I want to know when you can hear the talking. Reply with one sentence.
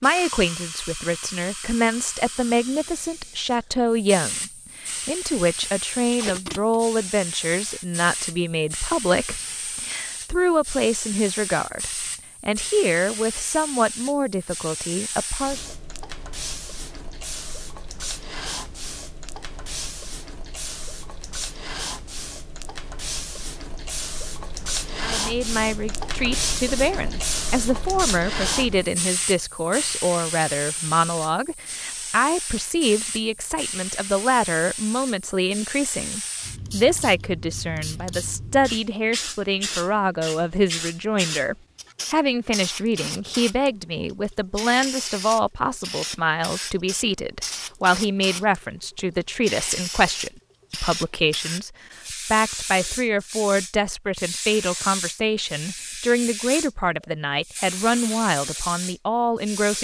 The talking can be heard from 0.0 to 15.7 s and from 25.0 to 59.7 s.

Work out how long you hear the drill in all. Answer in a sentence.
The drill can't be heard in this clip.